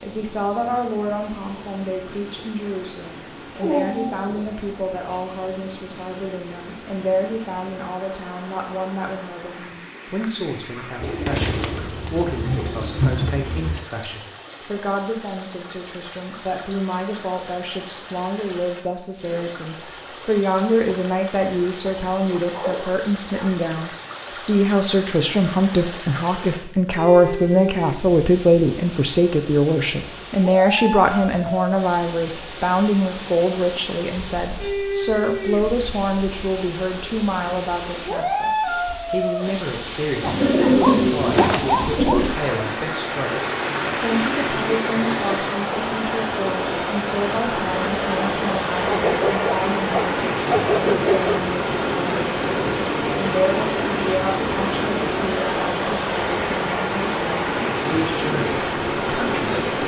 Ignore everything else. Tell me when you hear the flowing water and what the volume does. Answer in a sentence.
The flowing water can be heard from 0.0 to 59.8 s, getting louder.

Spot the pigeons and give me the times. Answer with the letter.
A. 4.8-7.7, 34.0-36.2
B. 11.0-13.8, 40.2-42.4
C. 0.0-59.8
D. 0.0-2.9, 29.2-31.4
B.